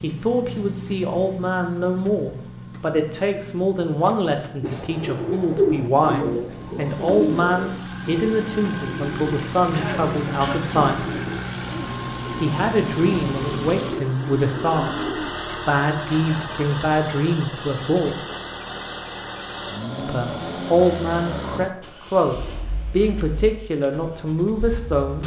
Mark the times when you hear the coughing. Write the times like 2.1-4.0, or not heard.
9.7-10.9.